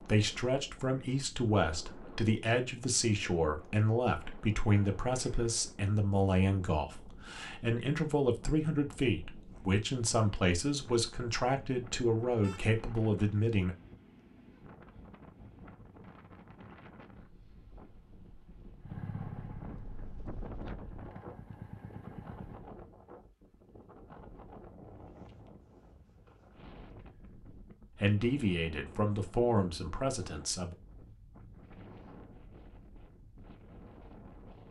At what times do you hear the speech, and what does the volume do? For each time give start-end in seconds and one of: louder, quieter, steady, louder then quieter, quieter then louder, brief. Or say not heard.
0.0-13.8 steady
27.9-30.8 brief.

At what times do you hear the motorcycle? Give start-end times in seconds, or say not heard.
18.8-22.6.